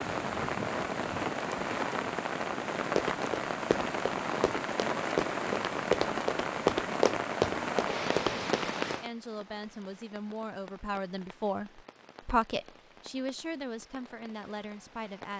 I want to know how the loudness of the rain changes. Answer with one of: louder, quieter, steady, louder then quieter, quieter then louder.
quieter.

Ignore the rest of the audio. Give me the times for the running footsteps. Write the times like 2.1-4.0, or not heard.
3.0-8.9.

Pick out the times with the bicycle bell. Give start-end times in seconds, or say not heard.
not heard.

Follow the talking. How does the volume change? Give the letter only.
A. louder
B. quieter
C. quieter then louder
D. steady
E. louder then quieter
E.